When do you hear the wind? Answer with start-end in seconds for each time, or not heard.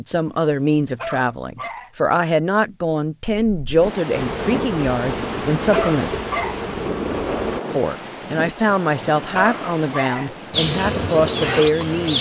3.2-12.1.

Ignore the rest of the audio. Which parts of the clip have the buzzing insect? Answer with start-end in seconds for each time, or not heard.
4.1-7.6, 10.5-12.1.